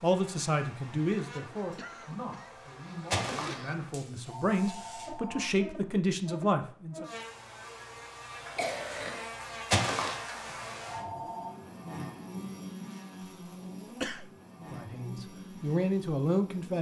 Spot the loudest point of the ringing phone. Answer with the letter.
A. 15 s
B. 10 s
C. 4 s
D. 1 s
B.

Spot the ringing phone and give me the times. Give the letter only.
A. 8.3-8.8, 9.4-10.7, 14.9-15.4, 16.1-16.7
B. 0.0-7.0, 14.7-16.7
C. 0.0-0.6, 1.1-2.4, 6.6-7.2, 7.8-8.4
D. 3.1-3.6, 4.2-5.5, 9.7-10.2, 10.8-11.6
D.